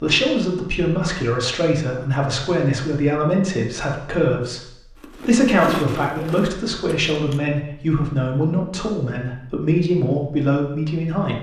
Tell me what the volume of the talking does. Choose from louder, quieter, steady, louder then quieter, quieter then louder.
steady.